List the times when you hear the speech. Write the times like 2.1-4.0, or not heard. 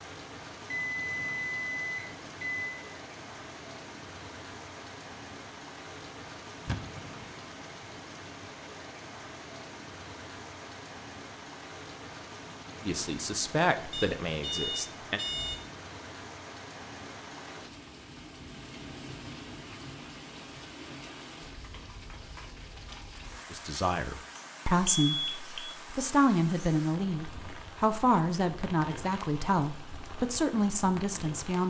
12.8-15.2, 23.5-31.6.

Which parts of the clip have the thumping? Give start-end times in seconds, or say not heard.
6.7-7.2.